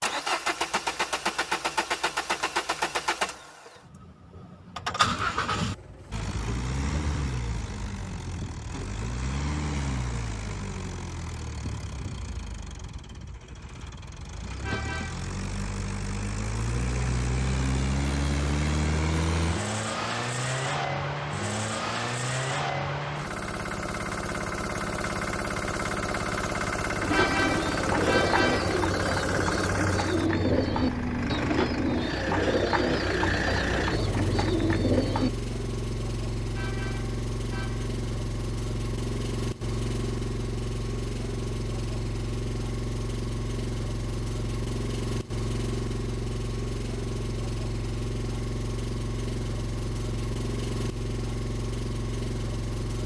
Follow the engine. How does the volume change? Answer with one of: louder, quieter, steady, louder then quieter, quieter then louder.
steady.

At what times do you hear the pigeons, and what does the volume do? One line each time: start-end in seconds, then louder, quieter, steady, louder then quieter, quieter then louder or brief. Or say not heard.
27.0-35.3 steady.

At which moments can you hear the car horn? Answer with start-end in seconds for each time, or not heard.
14.6-15.3, 27.1-28.8, 36.5-37.9.